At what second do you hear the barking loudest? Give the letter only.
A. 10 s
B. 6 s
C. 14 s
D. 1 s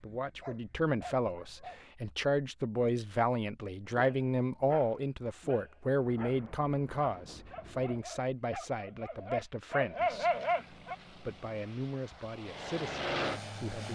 A.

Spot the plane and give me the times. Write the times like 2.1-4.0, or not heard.
10.1-13.9.